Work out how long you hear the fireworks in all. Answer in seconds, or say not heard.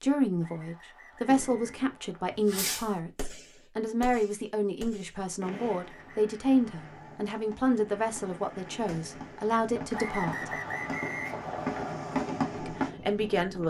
12 s.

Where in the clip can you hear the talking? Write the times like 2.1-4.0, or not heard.
0.0-10.6, 12.6-13.6.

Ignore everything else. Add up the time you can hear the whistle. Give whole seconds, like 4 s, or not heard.
5 s.